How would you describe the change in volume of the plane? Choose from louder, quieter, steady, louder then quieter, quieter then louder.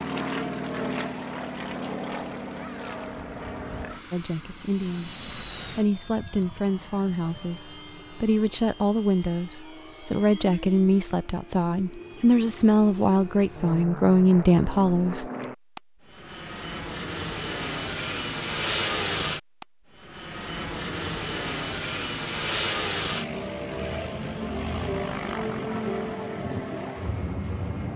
quieter then louder.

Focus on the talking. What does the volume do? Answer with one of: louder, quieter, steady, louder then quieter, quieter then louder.
louder.